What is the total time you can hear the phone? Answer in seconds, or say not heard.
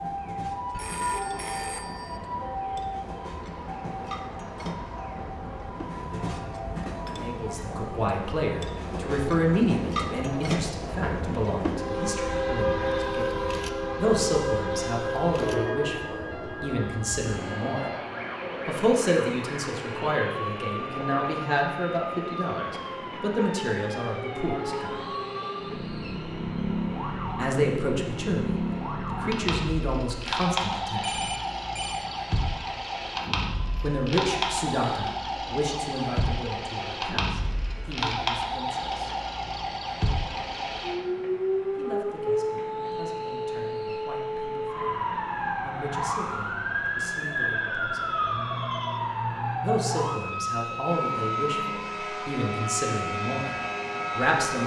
4 s.